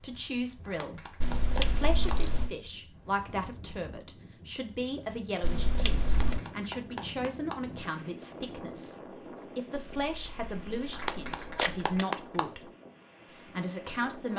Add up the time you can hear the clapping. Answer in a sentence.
The clapping can be heard for 5 seconds in total.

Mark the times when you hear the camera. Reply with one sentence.
You can hear the camera from 1.2 to 2.5 s, from 5.4 to 6.4 s and from 9.9 to 12.0 s.